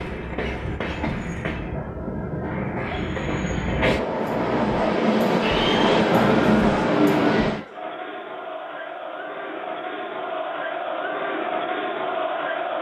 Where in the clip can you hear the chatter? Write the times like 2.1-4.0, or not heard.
5.4-12.7.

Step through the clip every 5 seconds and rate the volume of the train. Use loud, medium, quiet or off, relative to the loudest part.
medium, loud, off.